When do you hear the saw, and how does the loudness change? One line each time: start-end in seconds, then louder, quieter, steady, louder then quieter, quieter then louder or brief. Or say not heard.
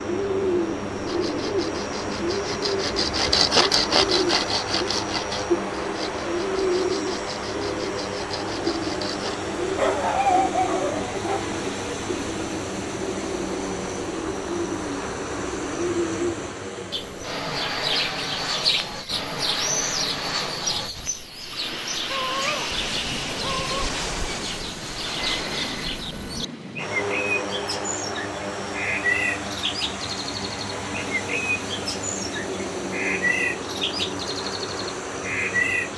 1.1-9.4 louder then quieter.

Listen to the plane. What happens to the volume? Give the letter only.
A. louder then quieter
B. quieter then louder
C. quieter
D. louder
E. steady
E.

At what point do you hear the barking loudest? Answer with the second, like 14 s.
10 s.